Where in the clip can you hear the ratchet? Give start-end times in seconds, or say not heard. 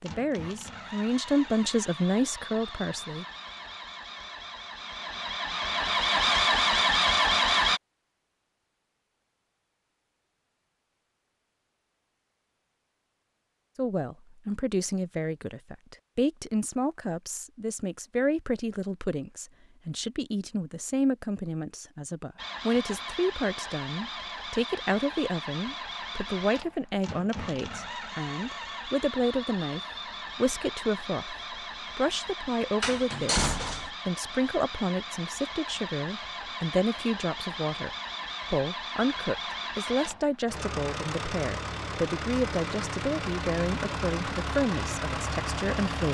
not heard.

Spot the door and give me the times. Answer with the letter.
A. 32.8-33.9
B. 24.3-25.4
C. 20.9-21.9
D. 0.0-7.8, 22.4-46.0
A.